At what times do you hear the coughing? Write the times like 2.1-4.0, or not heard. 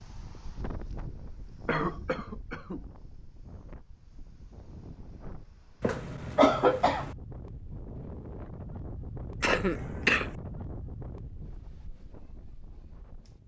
1.6-2.9, 5.8-7.2, 9.4-10.3.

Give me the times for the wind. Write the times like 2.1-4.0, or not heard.
0.0-13.4.